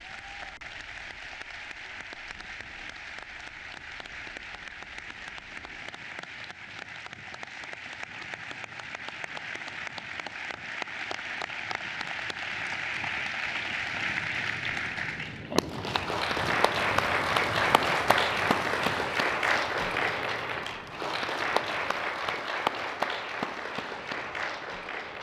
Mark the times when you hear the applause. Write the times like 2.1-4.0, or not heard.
0.0-25.1.